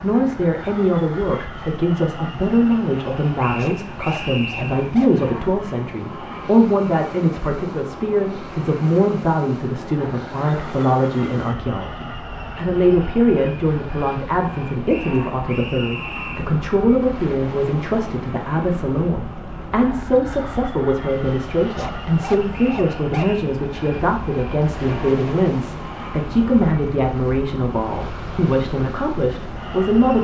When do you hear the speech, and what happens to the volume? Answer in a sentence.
The speech can be heard from 0.0 to 30.1 s, at a steady volume.